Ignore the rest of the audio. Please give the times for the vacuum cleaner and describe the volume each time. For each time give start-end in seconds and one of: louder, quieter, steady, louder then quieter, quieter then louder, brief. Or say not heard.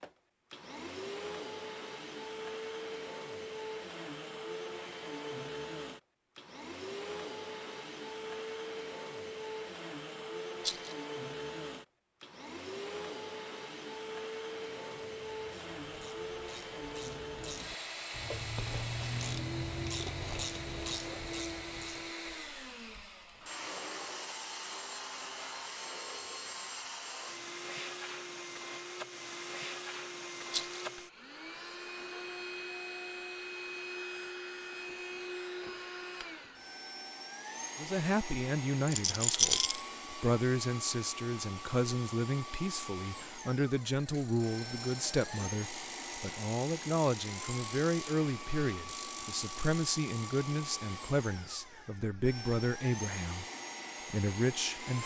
0.0-55.0 steady.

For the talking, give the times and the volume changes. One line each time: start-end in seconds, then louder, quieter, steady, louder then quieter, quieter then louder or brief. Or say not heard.
37.8-53.5 steady
54.1-55.0 brief.